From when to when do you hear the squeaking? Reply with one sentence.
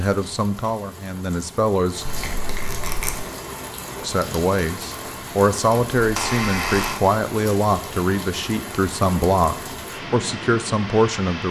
The squeaking can be heard from 2.0 to 3.1 s and from 6.0 to 7.0 s.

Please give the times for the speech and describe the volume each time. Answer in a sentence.
The speech can be heard briefly from 0.0 to 2.0 s; and from 4.0 to 11.4 s, at a steady volume.